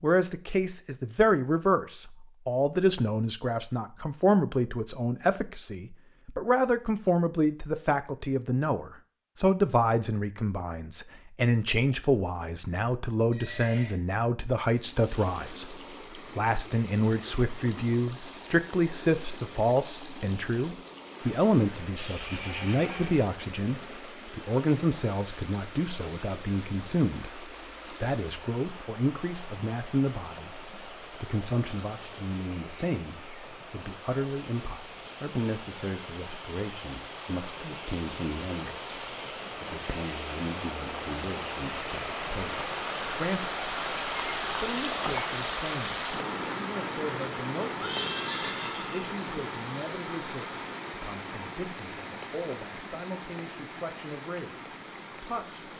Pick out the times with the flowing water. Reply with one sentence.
You can hear the flowing water from 14.7 to 55.7 s.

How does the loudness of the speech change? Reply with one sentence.
The loudness of the speech goes down.